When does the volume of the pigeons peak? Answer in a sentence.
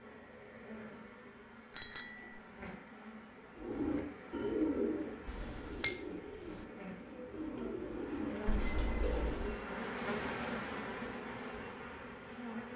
The volume of the pigeons peaks at 5 seconds.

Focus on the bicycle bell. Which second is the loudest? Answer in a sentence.
The volume of the bicycle bell peaks at 2 seconds.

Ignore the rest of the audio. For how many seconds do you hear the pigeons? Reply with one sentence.
The pigeons can be heard for 6 seconds in total.